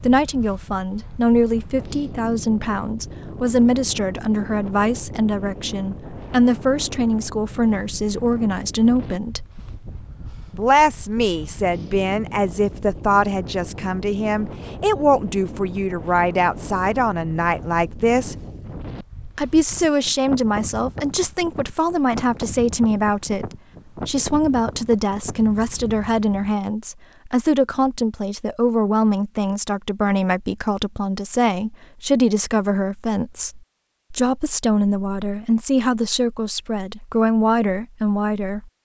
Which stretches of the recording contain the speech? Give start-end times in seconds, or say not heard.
0.0-9.4, 10.6-18.4, 19.4-23.4, 24.1-38.7.